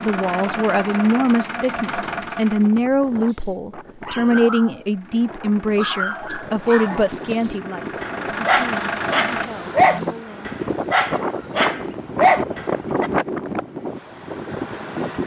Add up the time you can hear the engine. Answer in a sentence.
You can hear the engine for 8 seconds altogether.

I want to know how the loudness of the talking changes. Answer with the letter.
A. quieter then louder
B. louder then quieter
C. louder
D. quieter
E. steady
D.